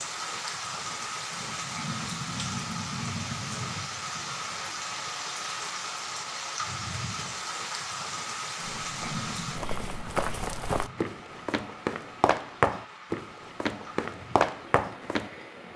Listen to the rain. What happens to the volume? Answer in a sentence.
The volume of the rain goes down.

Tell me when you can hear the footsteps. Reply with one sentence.
The footsteps can be heard from 8.8 to 15.3 s.